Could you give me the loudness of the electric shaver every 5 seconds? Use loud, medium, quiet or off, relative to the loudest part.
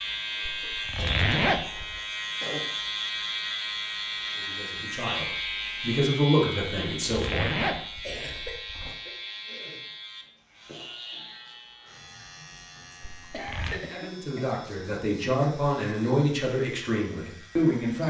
loud, loud, quiet, quiet.